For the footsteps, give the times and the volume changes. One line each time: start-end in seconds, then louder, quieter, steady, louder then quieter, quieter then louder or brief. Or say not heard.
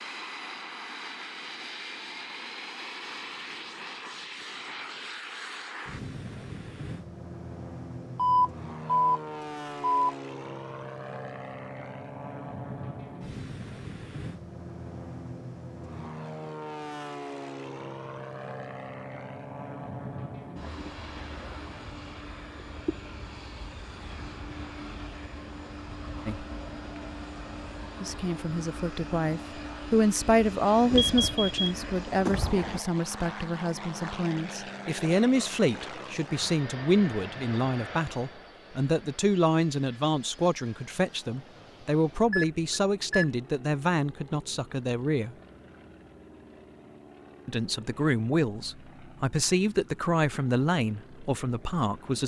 not heard.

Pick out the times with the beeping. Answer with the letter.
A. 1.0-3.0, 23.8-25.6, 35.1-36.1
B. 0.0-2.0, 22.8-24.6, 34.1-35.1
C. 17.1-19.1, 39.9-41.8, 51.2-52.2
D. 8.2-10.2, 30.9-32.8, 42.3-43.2
D.